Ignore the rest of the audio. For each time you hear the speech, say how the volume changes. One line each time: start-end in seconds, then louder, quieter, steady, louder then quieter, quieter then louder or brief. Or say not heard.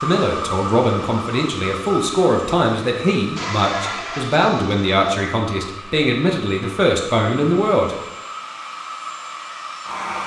0.0-8.0 steady.